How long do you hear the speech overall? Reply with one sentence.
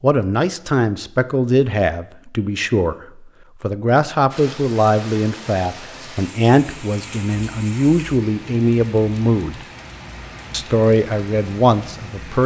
You can hear the speech for 11 seconds altogether.